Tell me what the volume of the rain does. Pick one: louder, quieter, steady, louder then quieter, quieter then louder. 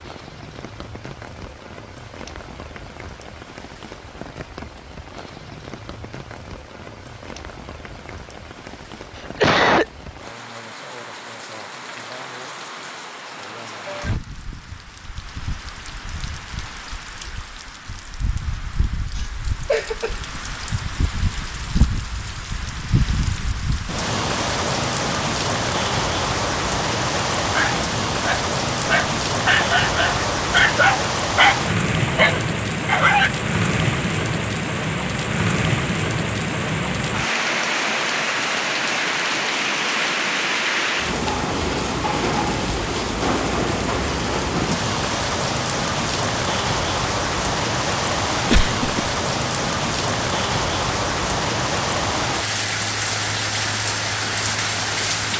louder.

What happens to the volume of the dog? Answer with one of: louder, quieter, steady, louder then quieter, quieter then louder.
louder.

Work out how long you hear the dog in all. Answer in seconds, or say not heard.
6 s.